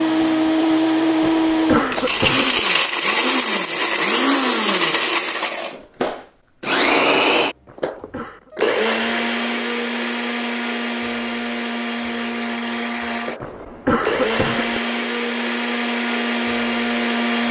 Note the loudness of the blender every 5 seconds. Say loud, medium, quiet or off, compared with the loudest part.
loud, loud, medium, loud.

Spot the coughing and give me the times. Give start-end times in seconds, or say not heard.
1.2-2.6, 7.7-8.5, 13.4-14.8.